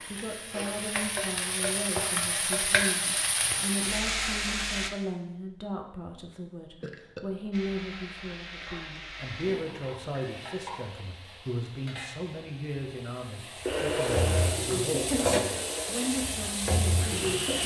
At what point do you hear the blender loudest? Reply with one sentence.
The volume of the blender peaks at 14 seconds.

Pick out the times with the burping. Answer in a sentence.
The burping can be heard from 6.8 to 7.5 s.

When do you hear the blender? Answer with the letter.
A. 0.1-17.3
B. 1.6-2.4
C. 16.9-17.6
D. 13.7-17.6
D.